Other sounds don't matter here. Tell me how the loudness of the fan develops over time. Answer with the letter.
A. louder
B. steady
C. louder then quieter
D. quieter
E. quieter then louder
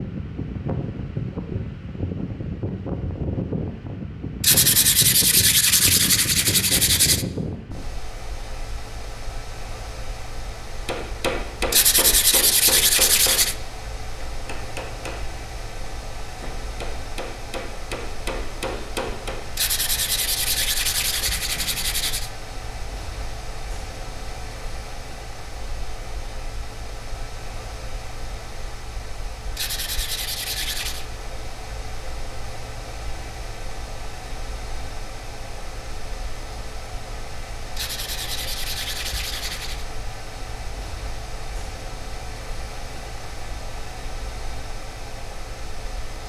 D.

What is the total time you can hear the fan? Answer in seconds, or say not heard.
46 s.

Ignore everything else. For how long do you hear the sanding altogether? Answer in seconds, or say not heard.
11 s.